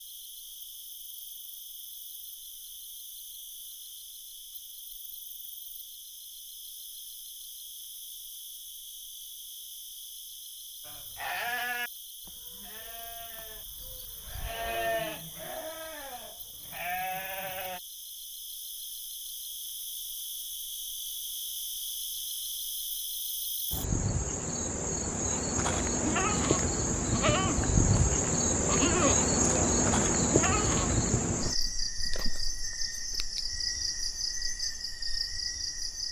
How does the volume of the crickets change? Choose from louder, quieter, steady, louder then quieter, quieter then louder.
louder.